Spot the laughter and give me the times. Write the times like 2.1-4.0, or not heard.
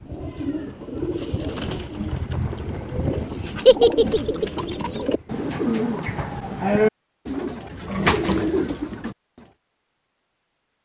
3.6-4.5.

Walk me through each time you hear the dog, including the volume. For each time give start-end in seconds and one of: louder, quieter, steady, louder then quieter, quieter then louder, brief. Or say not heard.
not heard.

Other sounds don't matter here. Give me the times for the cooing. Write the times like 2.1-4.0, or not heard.
0.1-9.2.